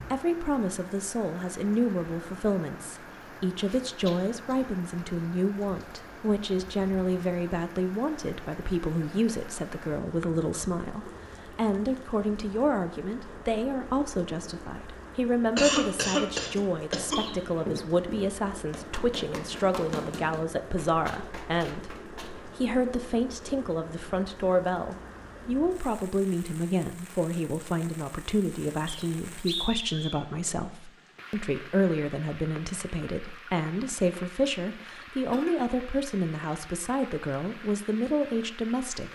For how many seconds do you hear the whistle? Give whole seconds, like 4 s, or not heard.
2 s.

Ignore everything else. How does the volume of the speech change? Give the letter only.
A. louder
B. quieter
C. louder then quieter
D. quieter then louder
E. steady
E.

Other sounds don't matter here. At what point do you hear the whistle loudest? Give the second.
30 s.